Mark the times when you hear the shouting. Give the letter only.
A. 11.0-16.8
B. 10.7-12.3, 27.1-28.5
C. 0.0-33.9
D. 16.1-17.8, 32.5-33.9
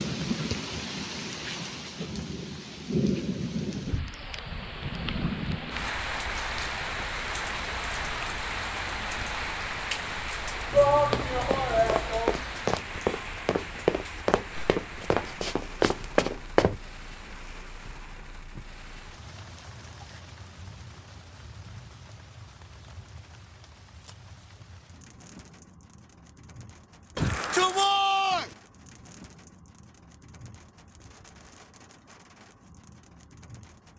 B.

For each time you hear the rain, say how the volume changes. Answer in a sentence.
The rain can be heard from 0.0 to 33.9 s, getting quieter.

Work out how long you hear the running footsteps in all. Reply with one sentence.
You can hear the running footsteps for 6 seconds altogether.